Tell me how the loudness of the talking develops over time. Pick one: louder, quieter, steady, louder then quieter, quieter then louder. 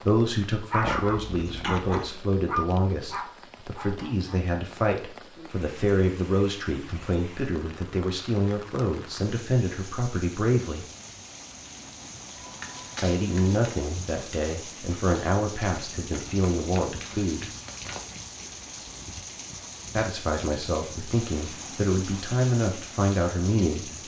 steady.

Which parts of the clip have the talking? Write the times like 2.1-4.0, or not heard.
0.0-10.8, 13.0-17.5, 19.9-24.0.